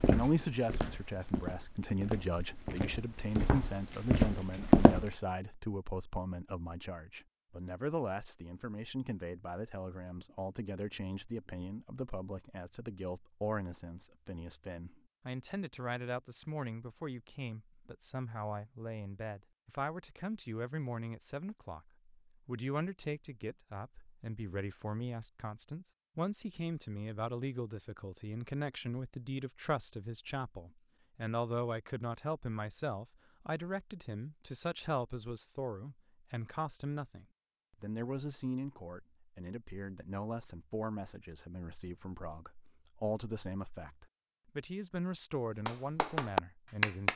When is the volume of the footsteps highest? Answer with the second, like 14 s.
5 s.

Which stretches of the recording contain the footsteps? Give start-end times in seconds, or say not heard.
0.0-5.1.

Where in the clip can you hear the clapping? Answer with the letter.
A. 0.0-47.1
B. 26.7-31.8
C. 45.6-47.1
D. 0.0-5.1
C.